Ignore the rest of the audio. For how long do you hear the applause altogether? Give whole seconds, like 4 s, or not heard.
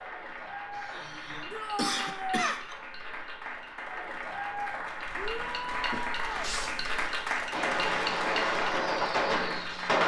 10 s.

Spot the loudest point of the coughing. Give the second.
2 s.